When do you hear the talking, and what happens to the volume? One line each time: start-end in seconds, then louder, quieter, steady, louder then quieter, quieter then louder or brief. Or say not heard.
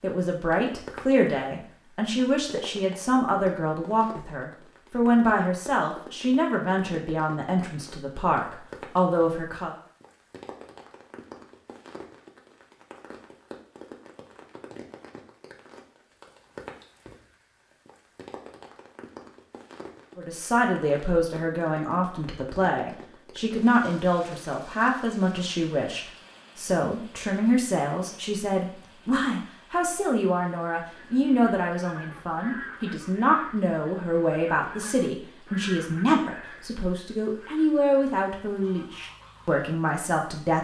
0.0-9.8 steady
20.1-40.5 steady.